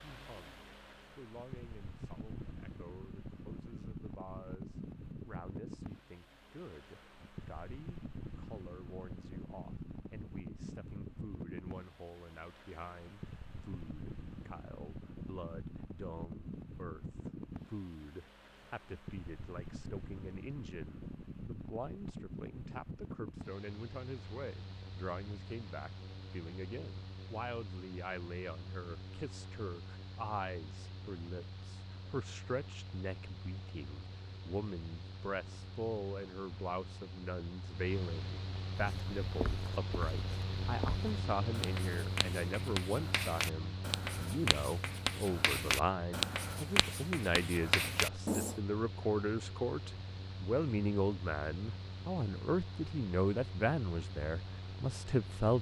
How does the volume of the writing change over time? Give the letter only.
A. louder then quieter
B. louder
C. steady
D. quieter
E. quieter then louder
B.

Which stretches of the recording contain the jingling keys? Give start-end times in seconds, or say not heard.
not heard.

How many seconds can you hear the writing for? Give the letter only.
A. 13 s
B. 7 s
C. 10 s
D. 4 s
C.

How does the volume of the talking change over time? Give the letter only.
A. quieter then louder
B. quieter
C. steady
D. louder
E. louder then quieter
D.